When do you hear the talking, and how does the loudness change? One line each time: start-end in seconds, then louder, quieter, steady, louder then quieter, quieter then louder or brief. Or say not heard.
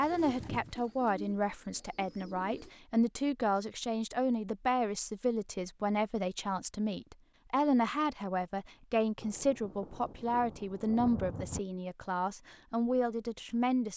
0.0-13.9 steady.